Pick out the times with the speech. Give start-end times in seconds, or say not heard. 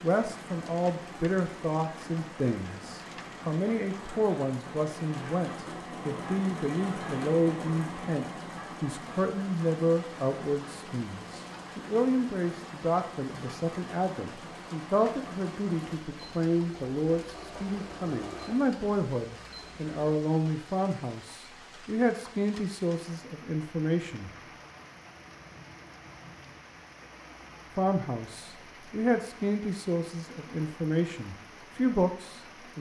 0.0-24.3, 27.8-32.7.